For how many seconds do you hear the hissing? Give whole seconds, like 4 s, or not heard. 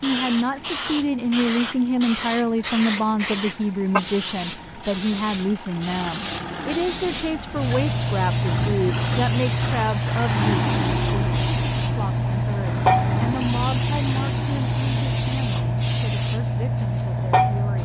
18 s.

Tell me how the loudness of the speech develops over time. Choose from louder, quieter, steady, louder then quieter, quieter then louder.
quieter.